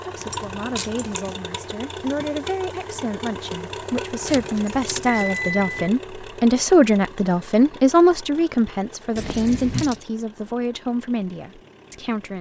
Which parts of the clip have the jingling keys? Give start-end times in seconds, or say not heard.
0.1-1.4, 4.2-5.9, 9.2-10.0.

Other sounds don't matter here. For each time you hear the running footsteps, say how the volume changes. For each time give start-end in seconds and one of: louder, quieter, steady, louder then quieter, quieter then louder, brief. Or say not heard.
not heard.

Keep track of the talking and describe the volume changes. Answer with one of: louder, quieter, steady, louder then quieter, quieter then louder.
louder then quieter.